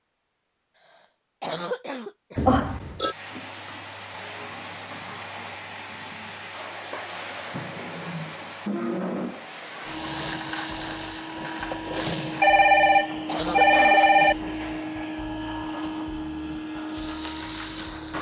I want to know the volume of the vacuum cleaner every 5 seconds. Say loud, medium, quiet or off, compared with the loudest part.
medium, loud, loud, loud.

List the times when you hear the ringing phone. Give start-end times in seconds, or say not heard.
2.4-3.1, 12.4-14.3.